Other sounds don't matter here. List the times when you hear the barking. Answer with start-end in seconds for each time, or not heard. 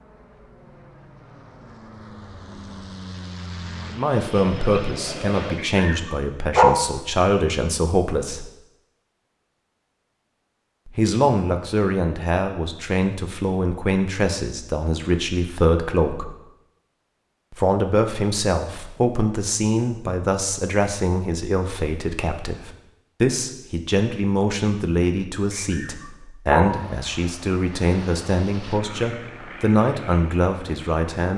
5.5-6.8, 25.5-26.8.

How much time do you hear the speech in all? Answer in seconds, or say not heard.
24 s.